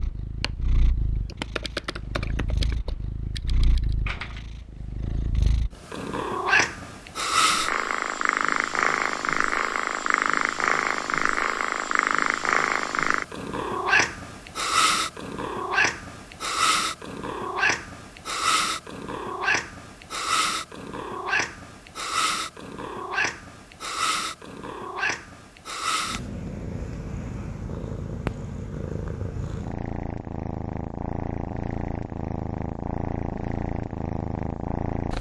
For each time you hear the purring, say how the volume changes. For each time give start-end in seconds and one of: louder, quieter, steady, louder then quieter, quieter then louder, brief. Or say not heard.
0.0-35.1 louder then quieter.